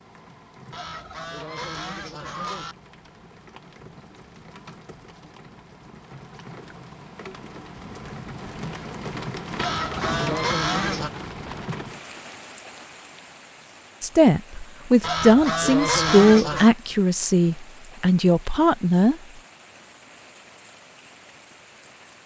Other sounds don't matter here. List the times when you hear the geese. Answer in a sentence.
The geese can be heard from 0.7 to 2.8 s, from 9.6 to 11.1 s and from 15.0 to 16.8 s.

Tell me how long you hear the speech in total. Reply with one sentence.
The speech can be heard for 5 seconds in total.